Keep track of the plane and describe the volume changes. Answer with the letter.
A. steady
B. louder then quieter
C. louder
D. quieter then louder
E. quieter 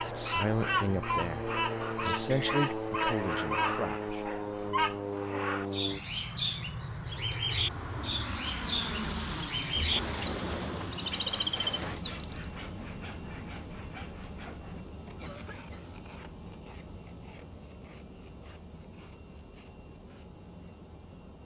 E.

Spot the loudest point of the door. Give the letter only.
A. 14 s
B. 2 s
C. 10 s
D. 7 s
C.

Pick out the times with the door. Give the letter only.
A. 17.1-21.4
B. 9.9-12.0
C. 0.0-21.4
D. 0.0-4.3
B.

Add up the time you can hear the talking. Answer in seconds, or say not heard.
4 s.